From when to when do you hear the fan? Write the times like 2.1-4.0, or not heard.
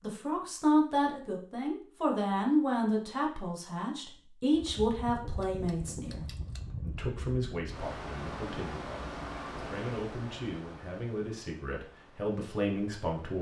4.5-13.3.